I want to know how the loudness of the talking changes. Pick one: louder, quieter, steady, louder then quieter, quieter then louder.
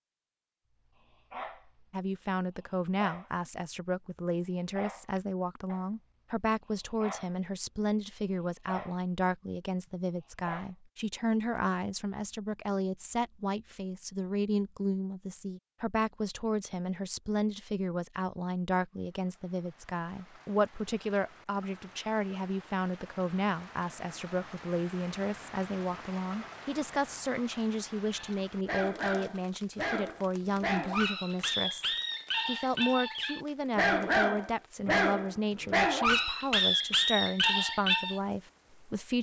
steady.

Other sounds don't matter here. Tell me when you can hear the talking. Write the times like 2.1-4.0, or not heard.
1.9-39.1.